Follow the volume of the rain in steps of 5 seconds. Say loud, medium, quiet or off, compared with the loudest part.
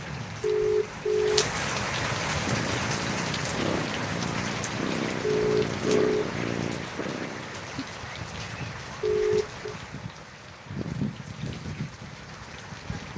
loud, medium, medium.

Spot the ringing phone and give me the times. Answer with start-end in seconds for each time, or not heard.
0.4-1.5, 5.2-6.3, 9.0-9.8.